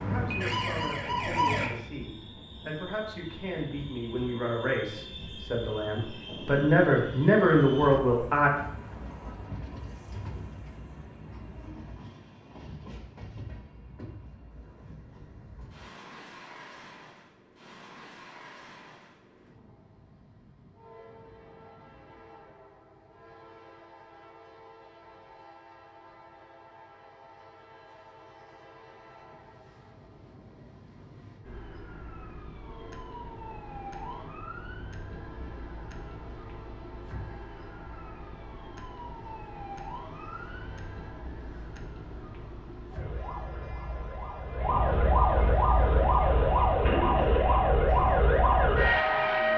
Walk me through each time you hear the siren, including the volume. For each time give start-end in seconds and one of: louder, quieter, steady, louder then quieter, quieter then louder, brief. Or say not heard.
0.0-1.7 brief
31.4-49.5 louder.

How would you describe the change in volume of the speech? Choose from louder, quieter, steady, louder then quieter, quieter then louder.
louder.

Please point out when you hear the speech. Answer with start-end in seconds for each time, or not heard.
0.0-8.5.